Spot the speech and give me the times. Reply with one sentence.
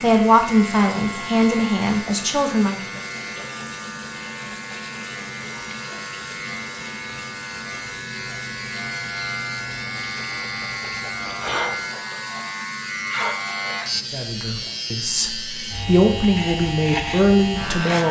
The speech can be heard from 0.0 to 3.0 s and from 14.1 to 18.0 s.